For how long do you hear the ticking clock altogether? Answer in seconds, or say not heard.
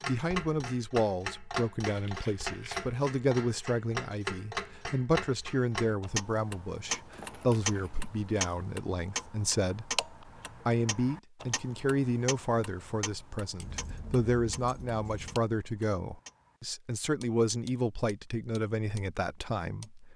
19 s.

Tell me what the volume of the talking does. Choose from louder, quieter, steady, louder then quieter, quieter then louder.
steady.